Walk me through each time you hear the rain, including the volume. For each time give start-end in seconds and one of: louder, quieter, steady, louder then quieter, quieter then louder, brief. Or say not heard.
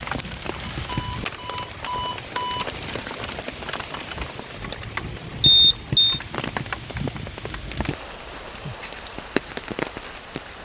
0.0-10.6 steady.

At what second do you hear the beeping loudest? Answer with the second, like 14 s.
6 s.